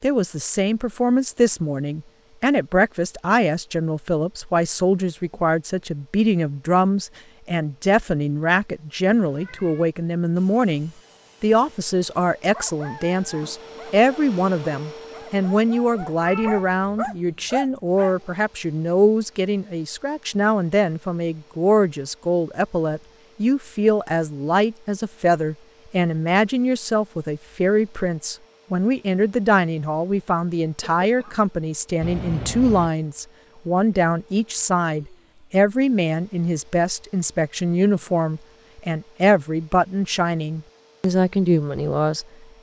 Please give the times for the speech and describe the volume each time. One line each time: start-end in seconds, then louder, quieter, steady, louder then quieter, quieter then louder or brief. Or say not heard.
0.0-42.2 steady.